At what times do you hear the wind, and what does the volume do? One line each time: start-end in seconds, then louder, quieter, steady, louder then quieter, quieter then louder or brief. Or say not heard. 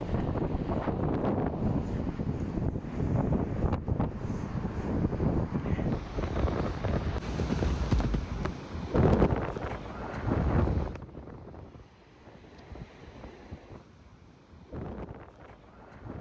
0.0-16.1 quieter.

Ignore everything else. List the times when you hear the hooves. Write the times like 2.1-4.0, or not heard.
7.3-9.8.